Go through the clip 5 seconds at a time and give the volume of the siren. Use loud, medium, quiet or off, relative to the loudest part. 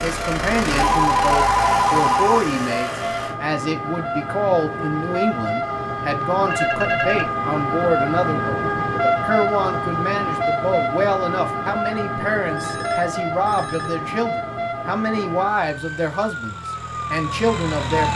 medium, loud, loud, medium.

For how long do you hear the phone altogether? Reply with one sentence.
The phone can be heard for 4 seconds in total.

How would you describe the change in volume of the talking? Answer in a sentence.
The volume of the talking stays about the same.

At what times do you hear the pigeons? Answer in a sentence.
You can't hear the pigeons here.